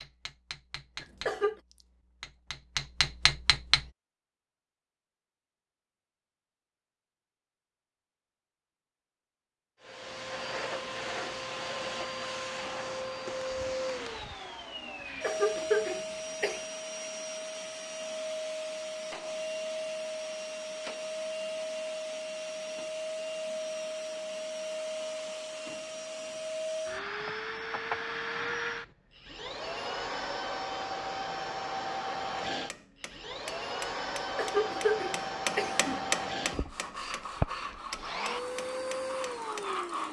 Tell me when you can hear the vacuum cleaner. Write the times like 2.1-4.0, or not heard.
9.8-40.0.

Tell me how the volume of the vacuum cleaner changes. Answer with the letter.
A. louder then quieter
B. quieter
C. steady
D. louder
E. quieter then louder
C.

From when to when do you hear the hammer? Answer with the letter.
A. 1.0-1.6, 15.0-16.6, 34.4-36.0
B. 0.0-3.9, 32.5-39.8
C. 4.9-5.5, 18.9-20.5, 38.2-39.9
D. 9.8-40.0
B.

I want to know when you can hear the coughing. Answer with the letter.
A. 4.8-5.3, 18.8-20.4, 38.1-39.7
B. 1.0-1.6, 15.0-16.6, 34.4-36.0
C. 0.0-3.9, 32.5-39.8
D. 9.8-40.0
B.